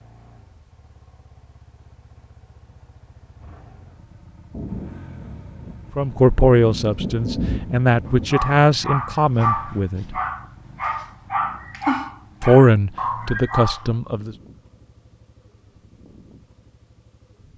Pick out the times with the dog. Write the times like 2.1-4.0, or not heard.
8.1-13.9.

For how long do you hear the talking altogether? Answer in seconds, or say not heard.
6 s.